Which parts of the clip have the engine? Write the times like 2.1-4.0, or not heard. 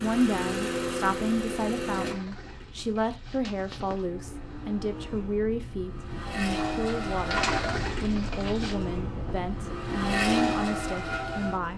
0.0-2.1, 4.0-11.7.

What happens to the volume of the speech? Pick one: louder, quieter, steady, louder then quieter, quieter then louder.
steady.